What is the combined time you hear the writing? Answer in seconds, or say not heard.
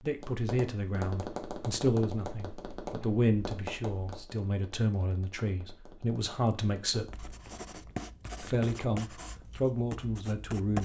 4 s.